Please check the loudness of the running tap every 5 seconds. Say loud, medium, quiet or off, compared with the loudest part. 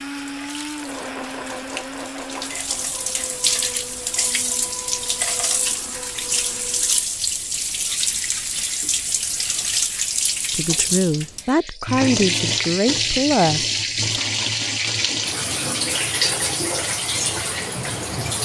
medium, loud, loud, loud.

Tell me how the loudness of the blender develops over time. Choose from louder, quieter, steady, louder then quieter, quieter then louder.
quieter.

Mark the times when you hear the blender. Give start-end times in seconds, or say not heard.
0.0-7.1.